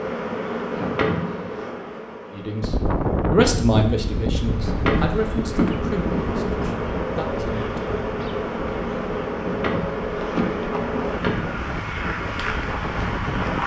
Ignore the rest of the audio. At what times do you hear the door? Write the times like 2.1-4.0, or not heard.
0.7-1.7, 4.6-5.8, 9.3-11.6.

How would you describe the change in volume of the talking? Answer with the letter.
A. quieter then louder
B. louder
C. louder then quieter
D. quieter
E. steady
D.